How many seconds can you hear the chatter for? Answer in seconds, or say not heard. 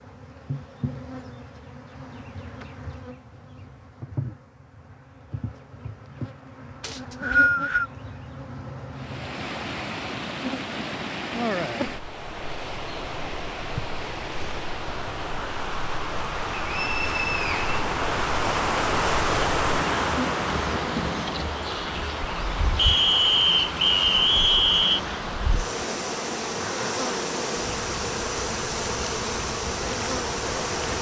not heard.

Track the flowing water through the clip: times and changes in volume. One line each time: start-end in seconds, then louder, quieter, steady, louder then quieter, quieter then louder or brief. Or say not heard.
8.9-30.9 louder then quieter.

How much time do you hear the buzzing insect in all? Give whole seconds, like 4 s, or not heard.
31 s.